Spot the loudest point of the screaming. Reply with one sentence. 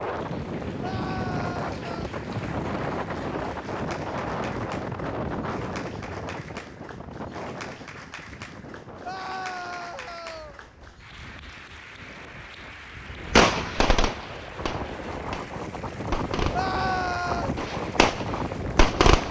The loudest moment of the screaming is at 17 seconds.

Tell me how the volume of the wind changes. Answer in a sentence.
The volume of the wind goes down, then up.